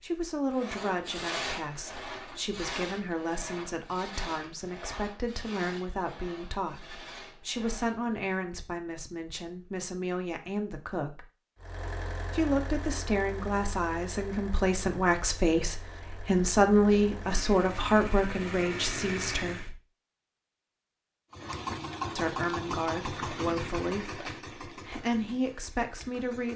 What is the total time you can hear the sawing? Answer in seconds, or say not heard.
8 s.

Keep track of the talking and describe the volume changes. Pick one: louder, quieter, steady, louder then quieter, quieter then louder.
louder then quieter.